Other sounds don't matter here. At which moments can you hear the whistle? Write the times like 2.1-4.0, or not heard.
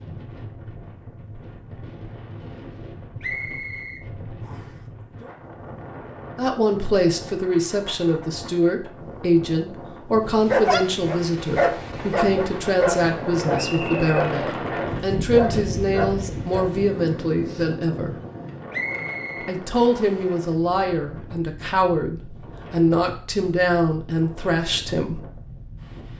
3.2-4.7, 13.6-14.1, 18.7-20.2.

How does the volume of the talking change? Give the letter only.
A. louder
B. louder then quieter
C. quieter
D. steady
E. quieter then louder
D.